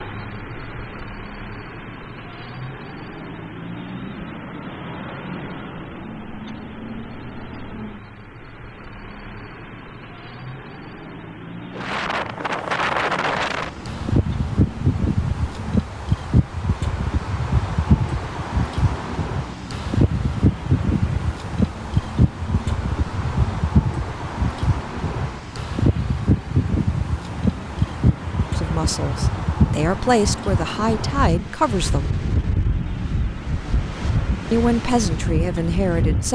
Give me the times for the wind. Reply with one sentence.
The wind can be heard from 11.8 to 36.2 s.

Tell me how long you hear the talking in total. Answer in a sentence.
The talking can be heard for 5 seconds in total.